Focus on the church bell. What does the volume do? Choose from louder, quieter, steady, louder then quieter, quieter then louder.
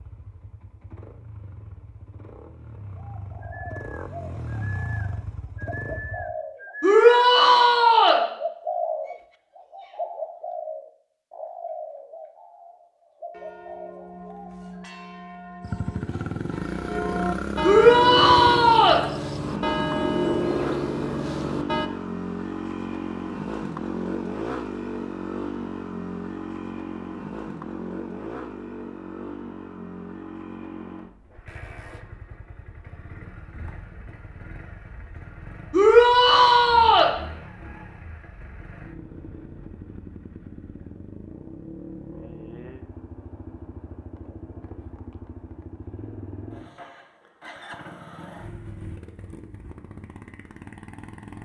louder.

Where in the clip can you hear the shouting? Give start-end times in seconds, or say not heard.
6.8-8.2, 17.6-19.0, 35.7-37.1.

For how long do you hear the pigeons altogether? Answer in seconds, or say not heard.
12 s.